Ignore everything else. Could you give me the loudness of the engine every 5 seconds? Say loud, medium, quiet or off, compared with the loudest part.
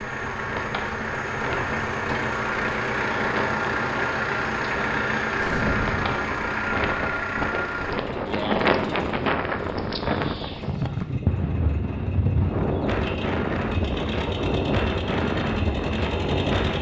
loud, loud, medium, medium.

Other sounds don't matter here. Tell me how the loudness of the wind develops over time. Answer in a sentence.
The volume of the wind goes up.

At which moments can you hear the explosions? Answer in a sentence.
The explosions can be heard from 5.3 to 6.2 s.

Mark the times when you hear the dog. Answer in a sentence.
The dog can't be heard in this clip.